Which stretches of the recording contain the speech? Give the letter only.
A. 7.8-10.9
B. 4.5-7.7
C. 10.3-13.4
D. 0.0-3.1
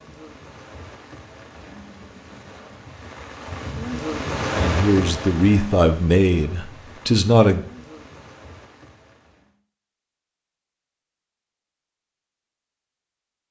B.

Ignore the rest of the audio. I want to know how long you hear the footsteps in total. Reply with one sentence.
You can't hear the footsteps here.